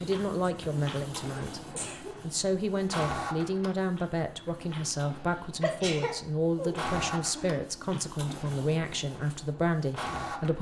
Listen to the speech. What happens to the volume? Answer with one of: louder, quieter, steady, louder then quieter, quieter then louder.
steady.